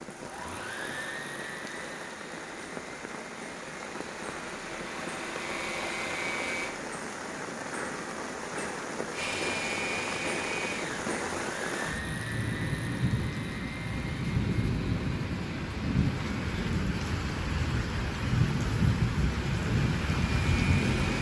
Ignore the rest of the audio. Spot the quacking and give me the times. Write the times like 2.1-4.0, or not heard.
not heard.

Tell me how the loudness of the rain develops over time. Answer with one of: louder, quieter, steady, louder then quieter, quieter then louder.
louder.